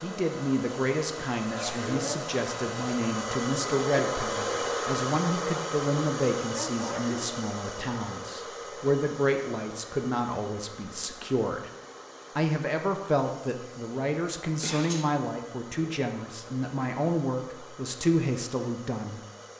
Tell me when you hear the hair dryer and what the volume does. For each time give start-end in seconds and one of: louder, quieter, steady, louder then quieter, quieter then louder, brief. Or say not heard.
0.0-19.5 quieter.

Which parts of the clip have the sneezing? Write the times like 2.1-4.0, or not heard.
1.5-2.2, 6.8-7.3, 14.6-15.1.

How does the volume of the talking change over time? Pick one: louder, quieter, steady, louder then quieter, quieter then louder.
steady.